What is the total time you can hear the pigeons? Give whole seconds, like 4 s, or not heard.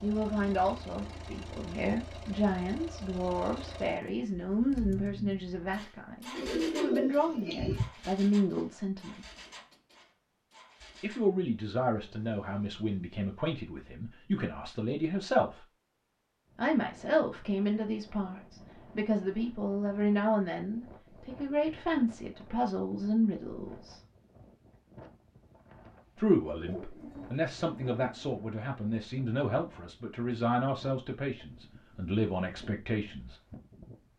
3 s.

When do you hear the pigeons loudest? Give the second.
7 s.